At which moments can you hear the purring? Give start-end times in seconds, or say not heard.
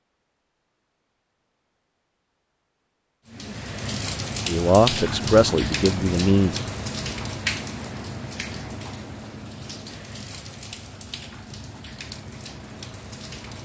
not heard.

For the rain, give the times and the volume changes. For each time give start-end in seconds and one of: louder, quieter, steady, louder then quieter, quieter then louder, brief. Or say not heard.
3.2-13.6 quieter.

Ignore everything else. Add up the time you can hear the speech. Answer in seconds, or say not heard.
2 s.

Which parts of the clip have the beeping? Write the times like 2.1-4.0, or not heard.
not heard.